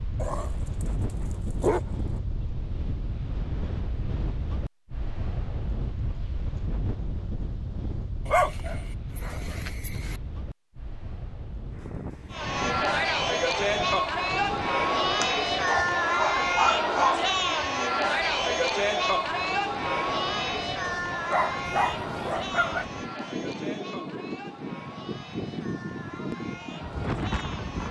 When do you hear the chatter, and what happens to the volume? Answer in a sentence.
You can hear the chatter from 12.3 to 27.8 s, getting quieter.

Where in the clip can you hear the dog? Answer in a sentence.
You can hear the dog from 0.1 to 2.2 s, from 8.2 to 10.2 s, from 15.2 to 17.2 s and from 21.3 to 22.9 s.